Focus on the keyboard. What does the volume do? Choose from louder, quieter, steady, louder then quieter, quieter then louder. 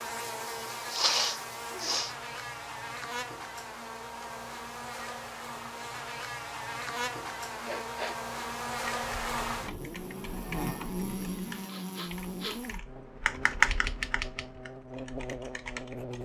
louder then quieter.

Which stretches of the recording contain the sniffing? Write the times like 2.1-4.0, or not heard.
0.9-2.1, 7.6-8.2, 11.7-12.6.